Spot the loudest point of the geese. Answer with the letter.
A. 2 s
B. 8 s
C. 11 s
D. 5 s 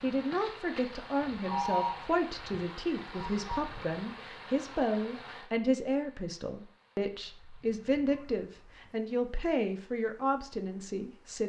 A.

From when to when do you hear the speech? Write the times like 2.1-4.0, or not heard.
0.0-11.4.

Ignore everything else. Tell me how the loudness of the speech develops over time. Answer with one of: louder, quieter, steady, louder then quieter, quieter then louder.
steady.